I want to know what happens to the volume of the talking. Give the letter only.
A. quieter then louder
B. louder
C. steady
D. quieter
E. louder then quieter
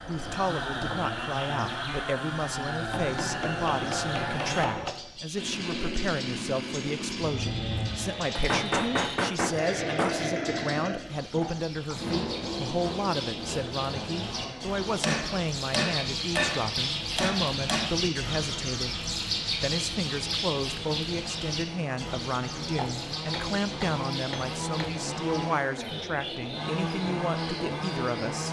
C.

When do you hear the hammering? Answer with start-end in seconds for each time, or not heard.
2.9-5.0, 8.3-10.2, 15.0-17.9, 22.8-25.1.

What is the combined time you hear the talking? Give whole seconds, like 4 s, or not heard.
28 s.